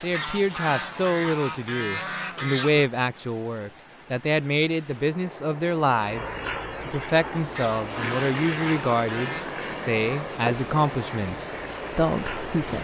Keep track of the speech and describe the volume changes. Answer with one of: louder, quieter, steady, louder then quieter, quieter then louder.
steady.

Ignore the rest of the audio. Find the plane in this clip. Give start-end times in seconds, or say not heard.
6.0-12.7.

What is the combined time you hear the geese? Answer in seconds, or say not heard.
5 s.